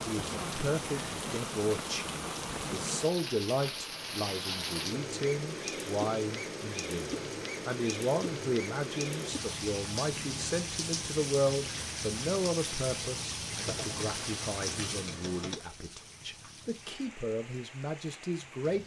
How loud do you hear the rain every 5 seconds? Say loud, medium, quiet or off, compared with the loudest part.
loud, loud, loud, quiet.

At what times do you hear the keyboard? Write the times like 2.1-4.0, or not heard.
13.6-15.6.